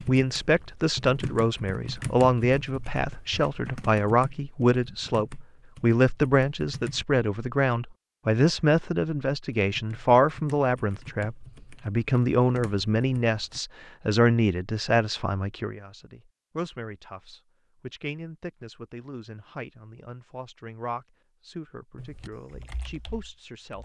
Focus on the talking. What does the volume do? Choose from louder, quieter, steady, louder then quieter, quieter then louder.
quieter.